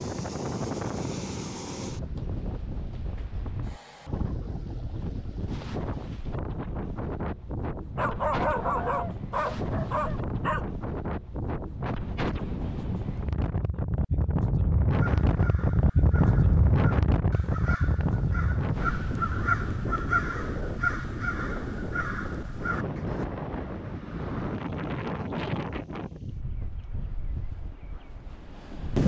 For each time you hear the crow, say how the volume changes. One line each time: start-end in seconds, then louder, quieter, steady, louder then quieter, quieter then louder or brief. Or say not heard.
14.9-23.2 louder then quieter.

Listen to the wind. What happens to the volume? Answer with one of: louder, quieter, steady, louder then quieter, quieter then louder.
louder then quieter.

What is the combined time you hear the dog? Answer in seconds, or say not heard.
3 s.